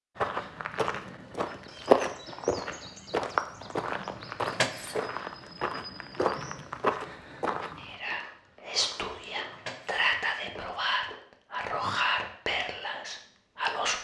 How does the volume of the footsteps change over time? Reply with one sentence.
The loudness of the footsteps goes down.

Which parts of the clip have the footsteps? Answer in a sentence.
The footsteps can be heard from 0.1 to 11.2 s.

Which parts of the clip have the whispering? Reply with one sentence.
You can hear the whispering from 7.8 to 13.9 s.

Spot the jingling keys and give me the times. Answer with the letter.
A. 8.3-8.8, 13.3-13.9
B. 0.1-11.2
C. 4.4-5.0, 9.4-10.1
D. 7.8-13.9
C.